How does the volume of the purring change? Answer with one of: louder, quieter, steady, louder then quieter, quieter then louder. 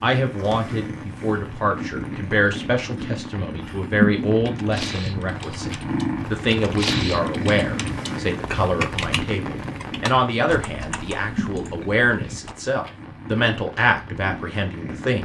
louder then quieter.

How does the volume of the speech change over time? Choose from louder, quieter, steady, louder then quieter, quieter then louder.
steady.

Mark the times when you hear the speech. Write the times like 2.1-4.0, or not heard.
0.0-15.2.